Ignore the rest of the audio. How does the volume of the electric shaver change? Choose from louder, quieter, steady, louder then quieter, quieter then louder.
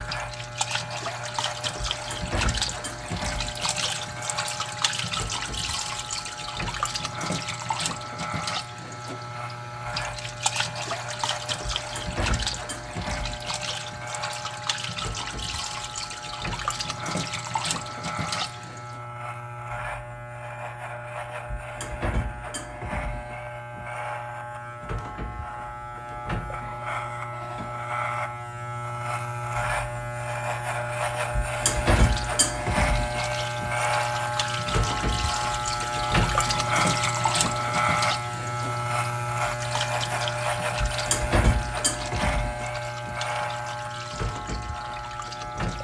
louder.